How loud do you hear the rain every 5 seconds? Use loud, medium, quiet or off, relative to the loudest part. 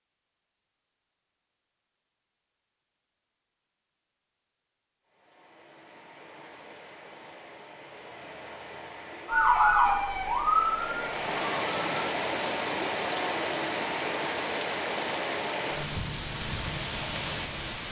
off, quiet, loud, loud.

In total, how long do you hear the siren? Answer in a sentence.
The siren can be heard for 3 seconds in total.